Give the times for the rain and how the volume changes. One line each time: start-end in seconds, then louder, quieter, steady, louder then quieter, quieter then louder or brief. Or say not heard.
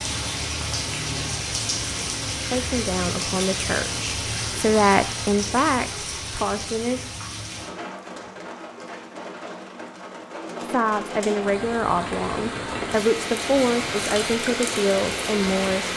0.0-15.9 quieter then louder.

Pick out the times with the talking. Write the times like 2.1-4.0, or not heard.
2.5-7.2, 10.6-15.9.